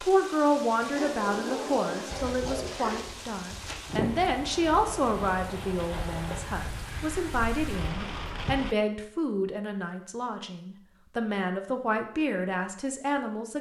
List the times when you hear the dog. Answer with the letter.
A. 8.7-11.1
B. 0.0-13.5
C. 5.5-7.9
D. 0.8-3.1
D.